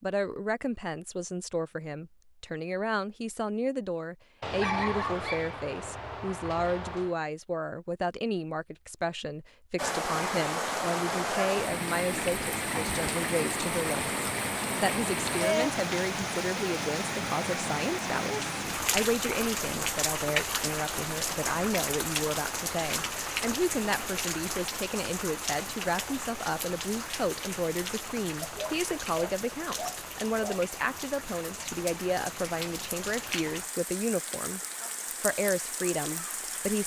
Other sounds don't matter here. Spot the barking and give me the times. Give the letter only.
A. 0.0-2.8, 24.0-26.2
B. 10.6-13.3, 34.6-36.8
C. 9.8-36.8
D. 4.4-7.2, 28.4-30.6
D.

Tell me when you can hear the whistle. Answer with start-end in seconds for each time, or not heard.
not heard.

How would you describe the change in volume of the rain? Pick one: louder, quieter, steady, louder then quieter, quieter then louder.
quieter.